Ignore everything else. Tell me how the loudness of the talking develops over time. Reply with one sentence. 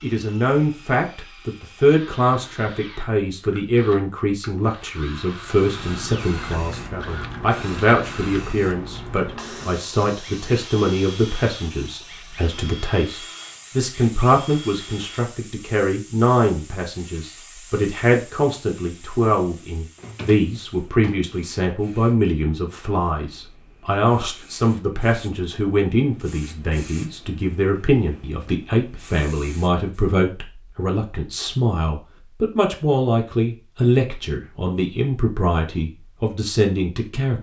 The loudness of the talking stays about the same.